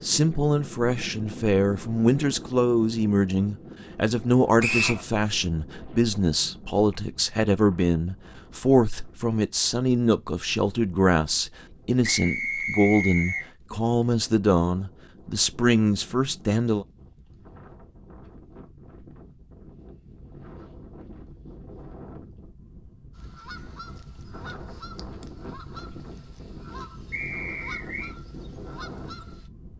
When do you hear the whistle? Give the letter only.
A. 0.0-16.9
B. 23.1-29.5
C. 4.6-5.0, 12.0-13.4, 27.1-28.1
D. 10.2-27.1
C.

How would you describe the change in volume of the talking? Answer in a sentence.
The volume of the talking stays about the same.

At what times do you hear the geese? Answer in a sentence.
The geese can be heard from 23.1 to 29.5 s.